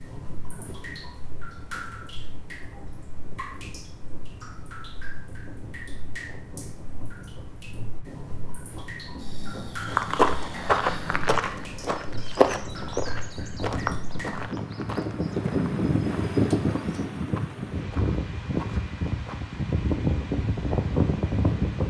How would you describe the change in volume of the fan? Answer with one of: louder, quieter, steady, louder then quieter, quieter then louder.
louder.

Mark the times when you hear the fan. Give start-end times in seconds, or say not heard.
0.0-21.8.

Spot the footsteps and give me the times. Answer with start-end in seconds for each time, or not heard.
9.8-19.4.